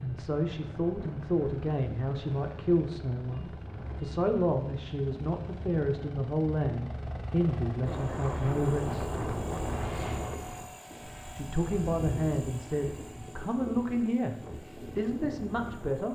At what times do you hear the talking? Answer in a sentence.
You can hear the talking from 0.0 to 9.2 s, from 11.3 to 14.3 s and from 14.9 to 16.1 s.